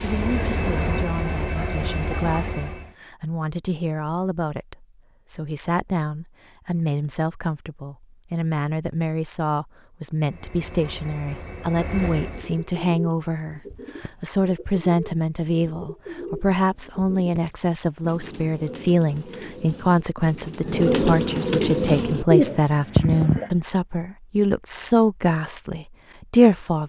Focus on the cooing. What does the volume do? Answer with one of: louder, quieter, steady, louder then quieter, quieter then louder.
louder.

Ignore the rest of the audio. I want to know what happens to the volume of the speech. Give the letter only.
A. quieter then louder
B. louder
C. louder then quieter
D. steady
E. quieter
B.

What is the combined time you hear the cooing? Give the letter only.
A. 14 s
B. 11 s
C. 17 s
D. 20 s
B.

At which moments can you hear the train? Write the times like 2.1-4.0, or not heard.
0.0-2.9, 10.2-12.8.